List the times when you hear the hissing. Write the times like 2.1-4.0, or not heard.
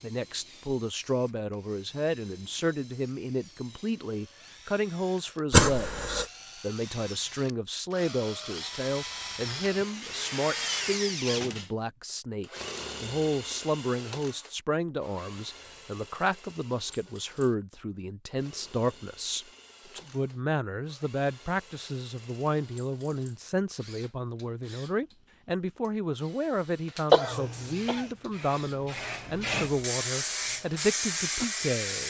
27.2-32.0.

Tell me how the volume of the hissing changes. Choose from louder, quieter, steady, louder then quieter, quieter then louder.
louder.